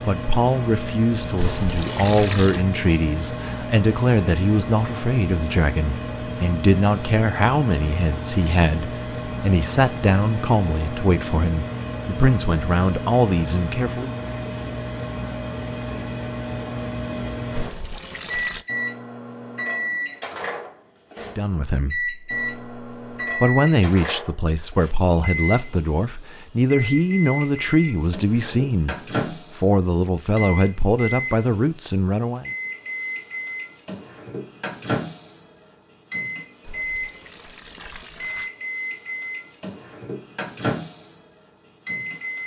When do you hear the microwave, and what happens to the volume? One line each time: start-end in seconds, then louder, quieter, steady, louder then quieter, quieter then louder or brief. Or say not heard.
0.0-42.4 steady.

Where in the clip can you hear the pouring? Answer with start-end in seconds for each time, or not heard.
1.4-2.6, 17.5-18.6, 36.6-38.5.